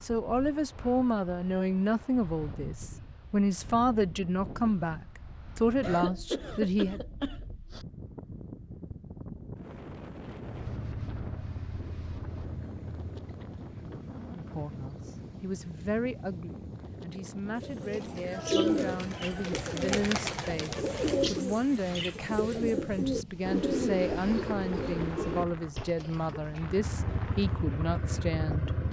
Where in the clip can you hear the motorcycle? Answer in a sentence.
You can hear the motorcycle from 10.4 to 15.4 s and from 26.6 to 28.8 s.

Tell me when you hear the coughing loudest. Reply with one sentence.
The loudest moment of the coughing is at 6 seconds.